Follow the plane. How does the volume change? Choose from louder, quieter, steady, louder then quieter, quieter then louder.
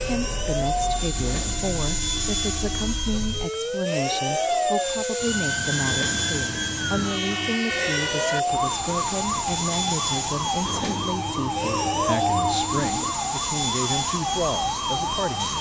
steady.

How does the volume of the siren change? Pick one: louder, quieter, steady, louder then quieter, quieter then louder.
louder.